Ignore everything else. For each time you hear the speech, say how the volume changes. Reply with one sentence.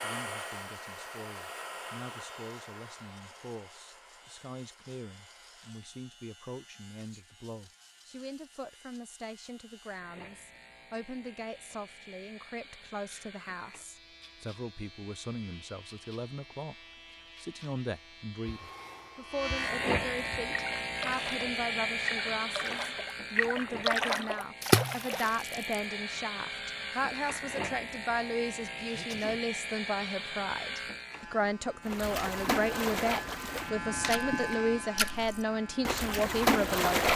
You can hear the speech from 0.0 to 37.1 s, getting louder.